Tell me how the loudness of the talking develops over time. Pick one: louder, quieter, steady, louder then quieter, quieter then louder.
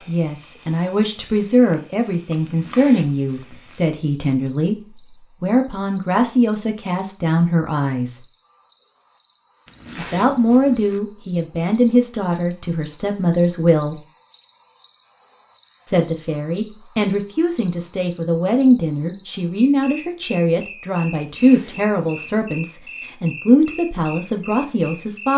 steady.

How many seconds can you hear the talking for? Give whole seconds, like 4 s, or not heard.
22 s.